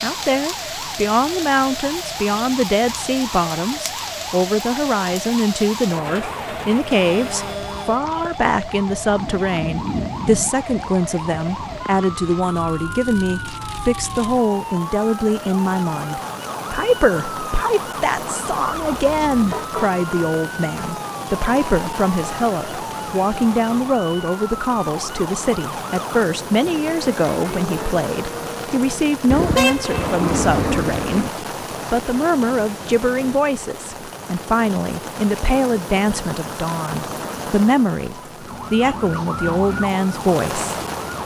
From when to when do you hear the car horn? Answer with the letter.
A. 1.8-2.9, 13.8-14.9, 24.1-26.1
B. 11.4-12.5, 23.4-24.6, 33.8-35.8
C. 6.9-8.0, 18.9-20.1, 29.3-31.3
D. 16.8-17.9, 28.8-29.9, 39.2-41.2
C.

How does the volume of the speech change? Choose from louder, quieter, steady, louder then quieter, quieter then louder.
steady.